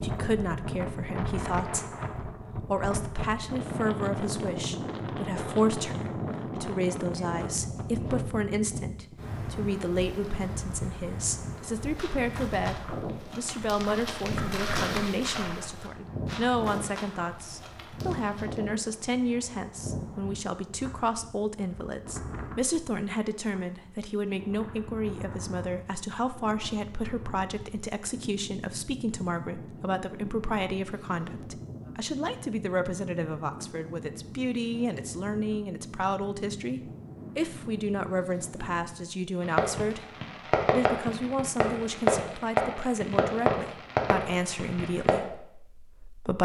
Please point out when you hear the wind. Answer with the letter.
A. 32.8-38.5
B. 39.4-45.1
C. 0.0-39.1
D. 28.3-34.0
C.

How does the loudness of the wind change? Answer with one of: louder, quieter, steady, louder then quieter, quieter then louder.
quieter.